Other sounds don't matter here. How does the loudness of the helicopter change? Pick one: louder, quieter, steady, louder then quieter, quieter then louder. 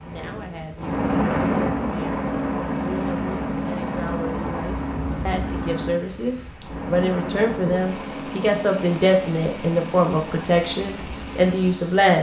quieter.